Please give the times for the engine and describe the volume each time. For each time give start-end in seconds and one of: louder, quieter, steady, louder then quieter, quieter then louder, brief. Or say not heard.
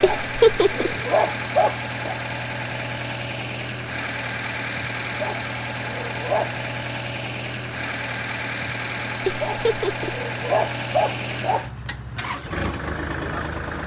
0.0-13.8 steady.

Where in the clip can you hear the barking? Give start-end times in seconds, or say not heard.
0.0-2.1, 5.2-6.5, 9.4-11.7.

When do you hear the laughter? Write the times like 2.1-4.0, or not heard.
0.0-0.9, 9.2-10.2.